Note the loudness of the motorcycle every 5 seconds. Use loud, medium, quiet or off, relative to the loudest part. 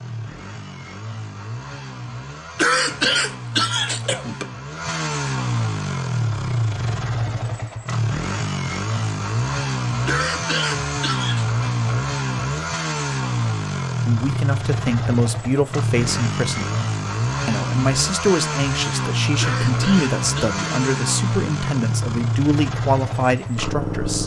medium, loud, loud, loud, loud.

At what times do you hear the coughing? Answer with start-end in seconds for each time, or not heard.
2.5-4.5, 10.1-11.4, 19.4-20.6.